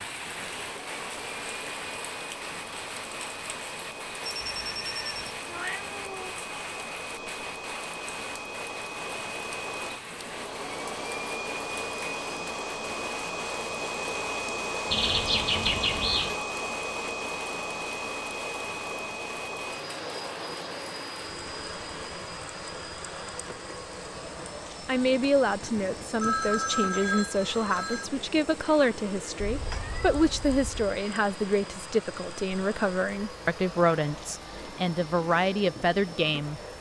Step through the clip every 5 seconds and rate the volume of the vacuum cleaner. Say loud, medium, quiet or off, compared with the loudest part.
medium, medium, loud, loud, medium, medium, medium, medium.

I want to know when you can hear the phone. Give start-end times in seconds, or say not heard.
4.2-5.1, 14.9-16.4, 25.6-28.1.